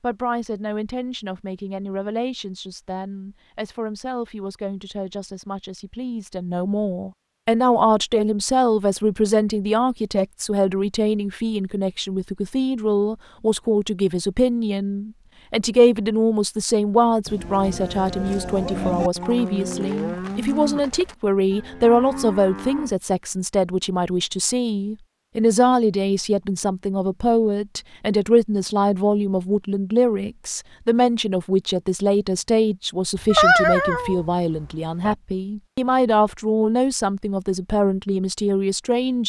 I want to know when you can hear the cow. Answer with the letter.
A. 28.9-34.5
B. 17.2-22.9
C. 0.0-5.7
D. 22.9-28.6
B.